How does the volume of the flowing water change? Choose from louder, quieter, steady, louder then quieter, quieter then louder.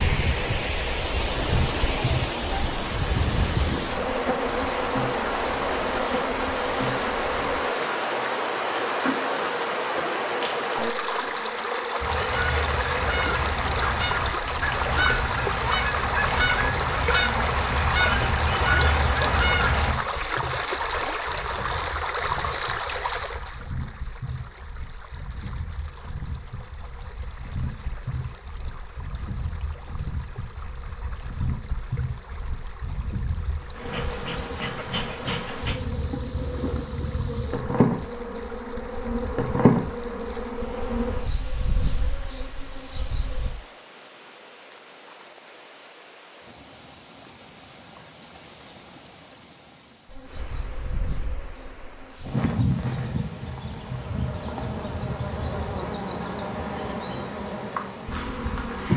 quieter.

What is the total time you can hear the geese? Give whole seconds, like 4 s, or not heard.
8 s.